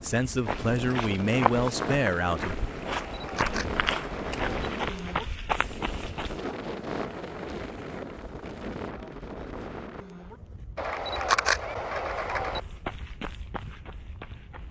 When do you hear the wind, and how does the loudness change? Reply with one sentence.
You can hear the wind from 0.0 to 14.6 s, getting quieter.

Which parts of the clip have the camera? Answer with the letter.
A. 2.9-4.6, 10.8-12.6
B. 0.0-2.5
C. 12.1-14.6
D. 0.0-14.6
A.